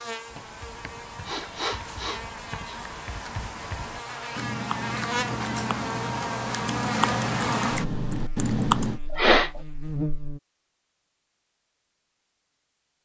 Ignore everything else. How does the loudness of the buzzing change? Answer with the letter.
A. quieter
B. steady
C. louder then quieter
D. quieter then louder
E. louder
C.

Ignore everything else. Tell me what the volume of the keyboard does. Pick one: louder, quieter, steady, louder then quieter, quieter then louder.
louder.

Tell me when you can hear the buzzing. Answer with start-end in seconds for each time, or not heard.
0.0-10.4.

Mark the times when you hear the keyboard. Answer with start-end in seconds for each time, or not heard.
0.2-9.0.